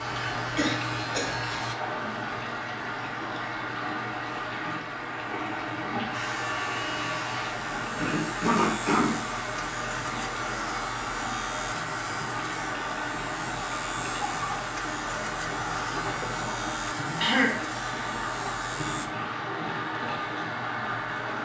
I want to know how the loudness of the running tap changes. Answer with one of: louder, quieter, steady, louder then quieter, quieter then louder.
steady.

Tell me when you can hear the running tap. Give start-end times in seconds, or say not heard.
0.0-21.3.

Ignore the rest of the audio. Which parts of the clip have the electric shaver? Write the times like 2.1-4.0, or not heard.
0.0-1.8, 6.1-19.1.